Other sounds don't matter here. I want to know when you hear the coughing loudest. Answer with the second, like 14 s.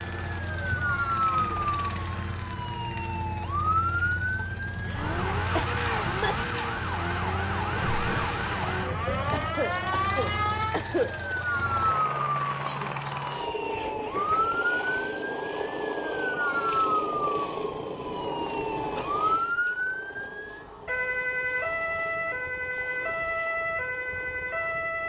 11 s.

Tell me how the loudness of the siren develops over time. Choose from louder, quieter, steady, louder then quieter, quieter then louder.
steady.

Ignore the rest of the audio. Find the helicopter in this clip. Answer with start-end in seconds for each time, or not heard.
0.0-25.0.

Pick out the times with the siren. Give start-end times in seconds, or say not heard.
0.2-25.0.